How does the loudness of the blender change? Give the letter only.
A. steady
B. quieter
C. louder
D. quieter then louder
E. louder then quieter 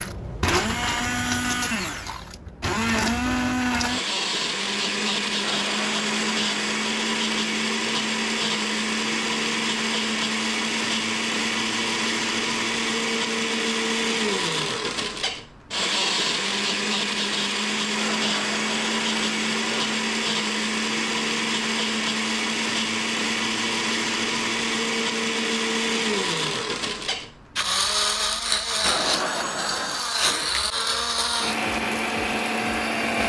A.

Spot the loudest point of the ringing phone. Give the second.
29 s.